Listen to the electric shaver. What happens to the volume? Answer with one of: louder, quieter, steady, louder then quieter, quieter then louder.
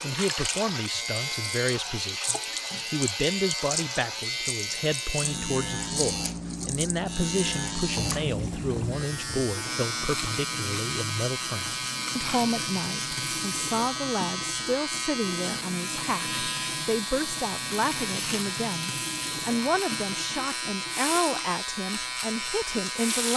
steady.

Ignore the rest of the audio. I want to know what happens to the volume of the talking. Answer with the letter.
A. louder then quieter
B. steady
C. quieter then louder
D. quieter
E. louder
B.